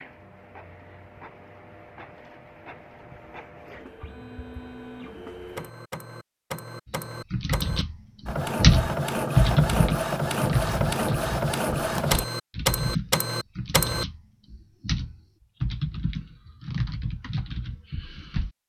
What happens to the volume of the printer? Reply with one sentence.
The volume of the printer goes up.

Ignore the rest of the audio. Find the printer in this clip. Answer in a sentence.
The printer can be heard from 0.0 to 14.1 s.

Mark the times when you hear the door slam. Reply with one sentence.
You can't hear the door slam here.